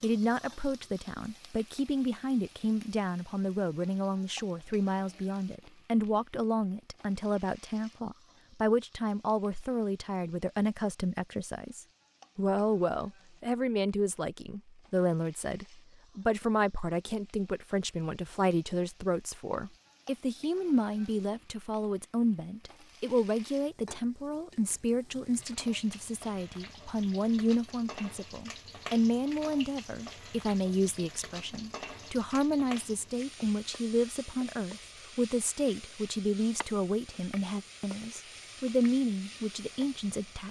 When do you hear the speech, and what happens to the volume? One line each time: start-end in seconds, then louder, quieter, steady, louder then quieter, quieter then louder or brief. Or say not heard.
0.0-40.4 steady.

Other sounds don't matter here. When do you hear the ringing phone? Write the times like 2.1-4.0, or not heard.
not heard.